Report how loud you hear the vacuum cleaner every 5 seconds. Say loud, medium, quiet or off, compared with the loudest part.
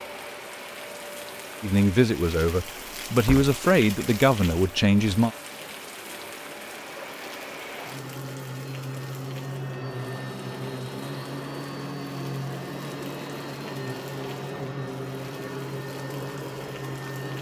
medium, loud, loud, loud.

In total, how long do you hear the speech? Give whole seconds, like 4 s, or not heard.
4 s.